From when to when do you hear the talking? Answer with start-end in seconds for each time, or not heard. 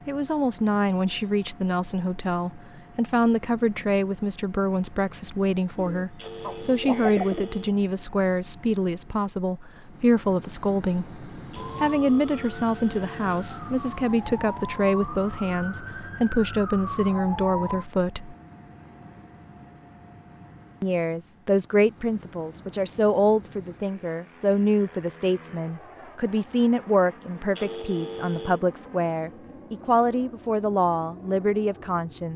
0.1-18.4, 20.8-32.3.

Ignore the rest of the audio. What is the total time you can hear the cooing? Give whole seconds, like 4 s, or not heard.
2 s.